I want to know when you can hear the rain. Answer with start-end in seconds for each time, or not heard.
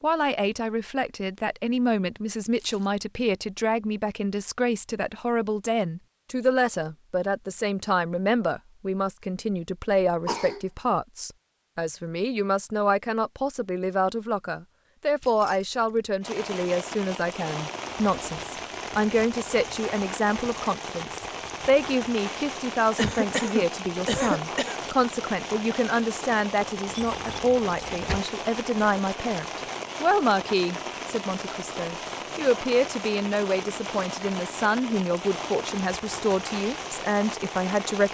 16.2-38.1.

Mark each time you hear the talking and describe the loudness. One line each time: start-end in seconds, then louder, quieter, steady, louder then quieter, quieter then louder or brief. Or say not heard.
0.0-38.1 steady.